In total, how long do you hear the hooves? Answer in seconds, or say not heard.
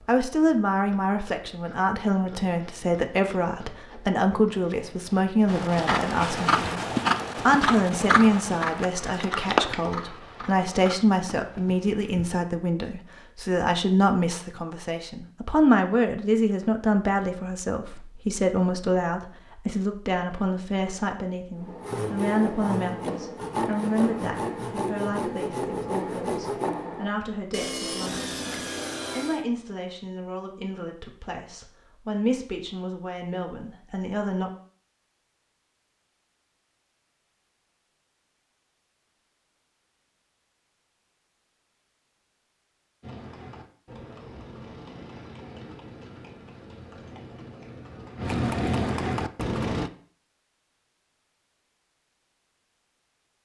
14 s.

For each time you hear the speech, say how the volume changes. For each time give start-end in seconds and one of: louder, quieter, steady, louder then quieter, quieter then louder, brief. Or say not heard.
0.1-6.8 steady
7.5-34.5 quieter.